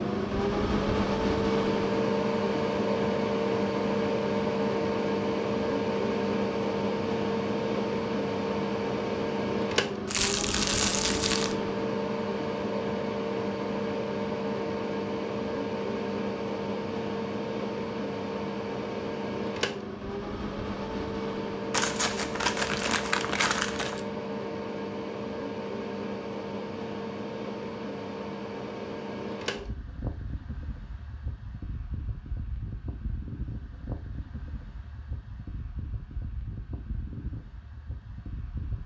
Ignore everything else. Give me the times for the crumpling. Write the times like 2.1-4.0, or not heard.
10.1-11.6, 21.7-24.0.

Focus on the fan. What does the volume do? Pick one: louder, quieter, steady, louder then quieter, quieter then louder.
quieter.